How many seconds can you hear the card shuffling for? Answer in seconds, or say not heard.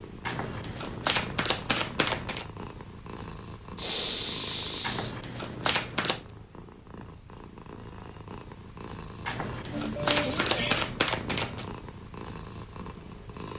6 s.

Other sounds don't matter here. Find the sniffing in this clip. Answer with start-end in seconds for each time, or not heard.
3.8-5.2, 9.7-10.8.